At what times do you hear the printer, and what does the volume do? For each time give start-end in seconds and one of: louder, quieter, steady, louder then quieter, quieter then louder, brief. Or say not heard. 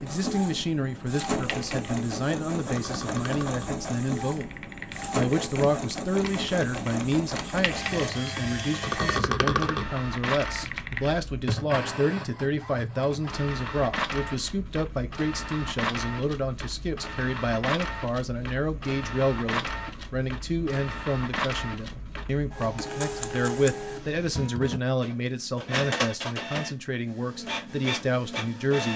0.0-28.9 steady.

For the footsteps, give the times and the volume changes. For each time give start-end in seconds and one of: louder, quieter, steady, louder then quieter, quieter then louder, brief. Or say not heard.
not heard.